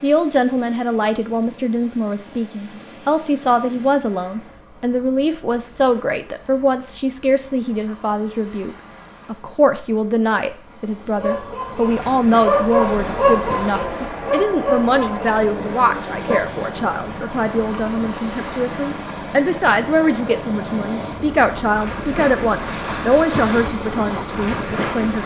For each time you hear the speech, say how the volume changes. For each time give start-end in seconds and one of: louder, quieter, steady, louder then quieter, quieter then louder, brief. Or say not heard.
0.0-25.2 steady.